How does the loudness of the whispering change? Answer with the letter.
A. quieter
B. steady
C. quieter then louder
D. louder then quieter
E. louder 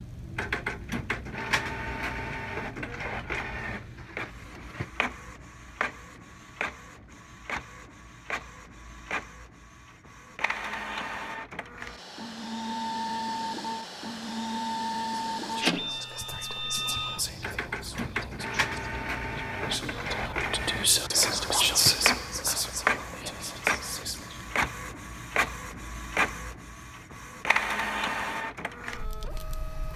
D.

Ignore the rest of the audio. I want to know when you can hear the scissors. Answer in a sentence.
You can't hear the scissors here.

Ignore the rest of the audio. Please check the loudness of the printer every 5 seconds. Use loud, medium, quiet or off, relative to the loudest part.
loud, medium, loud, loud, loud, loud.